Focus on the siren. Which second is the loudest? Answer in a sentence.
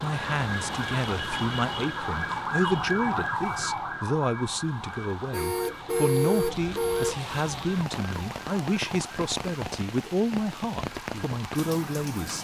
The loudest moment of the siren is at 3 seconds.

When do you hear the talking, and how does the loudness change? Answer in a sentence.
You can hear the talking from 0.0 to 12.3 s, at a steady volume.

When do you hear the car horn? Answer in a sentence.
You can hear the car horn from 5.3 to 7.2 s.